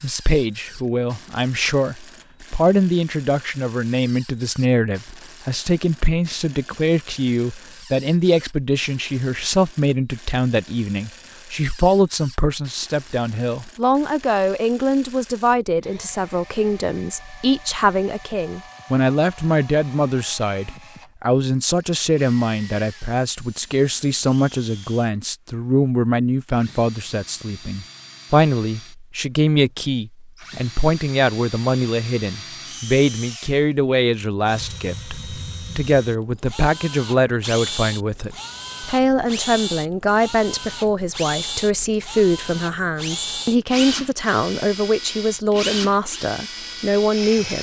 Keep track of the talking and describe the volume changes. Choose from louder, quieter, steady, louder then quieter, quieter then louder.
steady.